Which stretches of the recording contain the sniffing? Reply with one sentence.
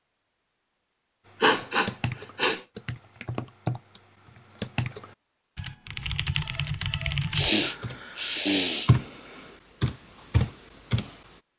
The sniffing can be heard from 1.4 to 2.6 s and from 7.3 to 8.9 s.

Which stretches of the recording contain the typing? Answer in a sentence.
You can hear the typing from 1.6 to 11.3 s.